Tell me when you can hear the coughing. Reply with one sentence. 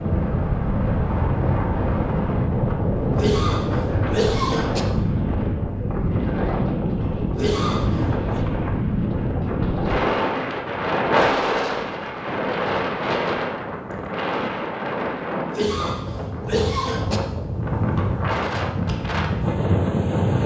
The coughing can be heard from 3.1 to 4.8 s, from 7.3 to 8.4 s and from 15.5 to 17.2 s.